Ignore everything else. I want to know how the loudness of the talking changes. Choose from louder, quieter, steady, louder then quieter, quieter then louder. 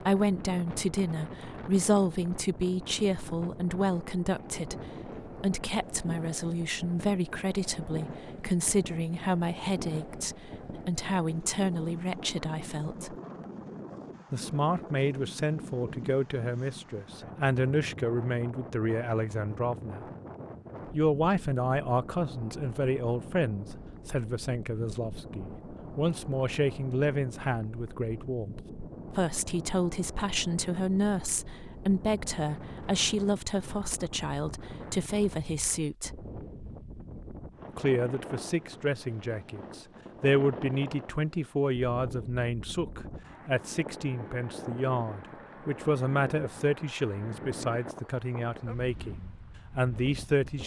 steady.